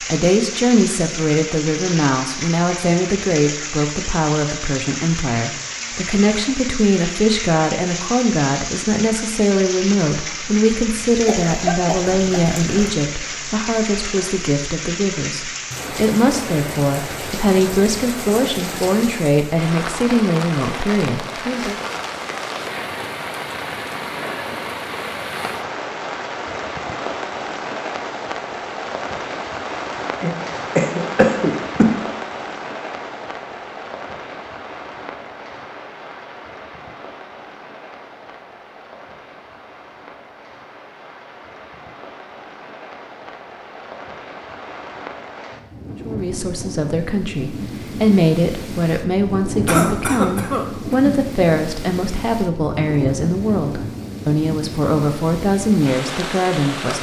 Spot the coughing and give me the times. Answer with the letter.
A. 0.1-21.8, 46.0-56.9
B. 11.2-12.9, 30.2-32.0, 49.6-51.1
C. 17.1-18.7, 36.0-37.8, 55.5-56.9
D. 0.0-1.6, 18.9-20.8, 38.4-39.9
B.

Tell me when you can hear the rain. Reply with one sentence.
You can hear the rain from 0.0 to 56.9 s.